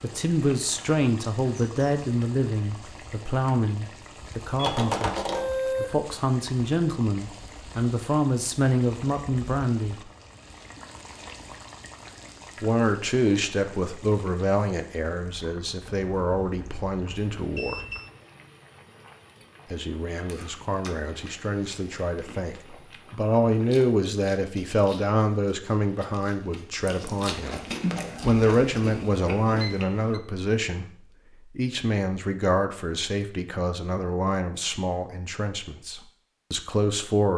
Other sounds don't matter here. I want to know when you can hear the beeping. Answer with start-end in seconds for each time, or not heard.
4.5-6.2, 15.9-18.1, 29.6-30.2.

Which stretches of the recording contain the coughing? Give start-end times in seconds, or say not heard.
not heard.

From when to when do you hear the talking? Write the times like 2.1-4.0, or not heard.
0.0-10.1, 12.6-17.8, 19.7-27.6, 28.2-30.9, 31.6-37.3.